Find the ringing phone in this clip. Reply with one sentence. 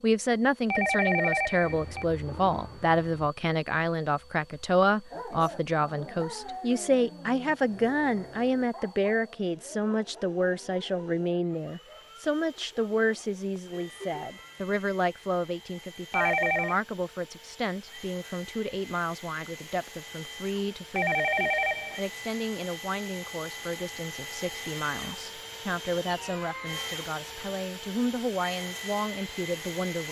The ringing phone can be heard from 0.7 to 2.0 s, from 16.1 to 16.8 s and from 20.9 to 22.0 s.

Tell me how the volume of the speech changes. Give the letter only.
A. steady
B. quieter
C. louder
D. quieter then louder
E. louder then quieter
B.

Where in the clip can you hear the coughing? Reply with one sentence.
The coughing can't be heard in this clip.